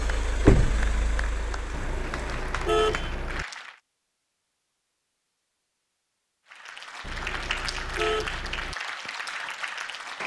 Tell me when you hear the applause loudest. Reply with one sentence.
The volume of the applause peaks at 8 seconds.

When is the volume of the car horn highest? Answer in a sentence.
The volume of the car horn peaks at 3 seconds.